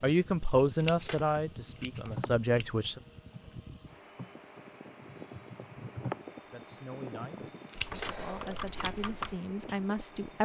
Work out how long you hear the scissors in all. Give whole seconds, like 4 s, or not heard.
2 s.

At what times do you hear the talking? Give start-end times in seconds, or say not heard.
0.0-3.0, 6.5-10.4.